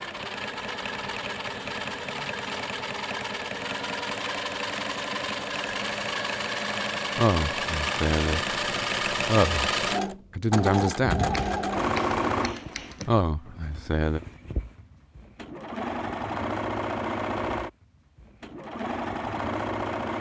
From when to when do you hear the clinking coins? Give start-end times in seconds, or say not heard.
not heard.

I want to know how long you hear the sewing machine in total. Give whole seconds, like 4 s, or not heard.
20 s.